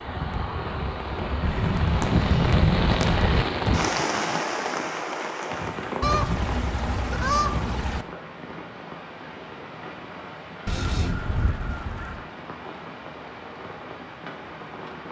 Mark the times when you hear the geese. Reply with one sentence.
The geese can be heard from 1.4 to 3.5 s, from 6.0 to 8.1 s and from 10.7 to 12.2 s.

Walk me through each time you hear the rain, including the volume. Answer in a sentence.
You can hear the rain from 0.0 to 15.0 s, getting quieter.